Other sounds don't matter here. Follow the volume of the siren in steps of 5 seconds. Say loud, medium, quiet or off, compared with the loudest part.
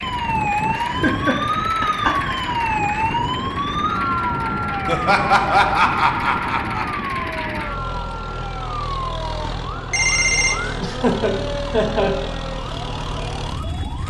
loud, medium, medium.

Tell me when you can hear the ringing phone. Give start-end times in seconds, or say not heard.
9.4-10.8.